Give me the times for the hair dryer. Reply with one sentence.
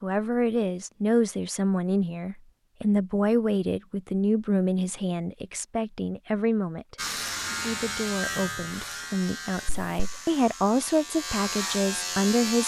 You can't hear the hair dryer here.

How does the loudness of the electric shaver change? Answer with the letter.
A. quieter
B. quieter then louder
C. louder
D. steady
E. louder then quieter
B.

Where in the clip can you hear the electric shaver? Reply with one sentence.
You can hear the electric shaver from 7.0 to 12.6 s.